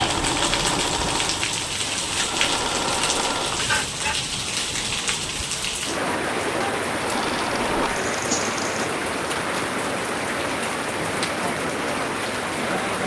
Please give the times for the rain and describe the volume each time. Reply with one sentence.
The rain can be heard from 0.0 to 13.0 s, at a steady volume.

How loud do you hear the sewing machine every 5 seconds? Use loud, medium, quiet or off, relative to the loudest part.
loud, loud, off.